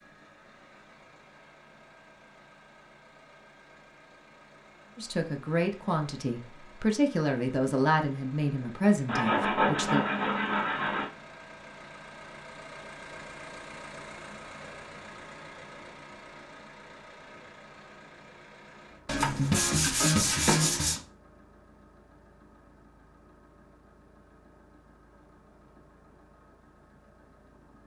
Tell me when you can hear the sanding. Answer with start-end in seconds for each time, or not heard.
9.1-11.1, 19.1-21.0.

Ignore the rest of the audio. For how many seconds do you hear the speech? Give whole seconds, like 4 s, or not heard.
5 s.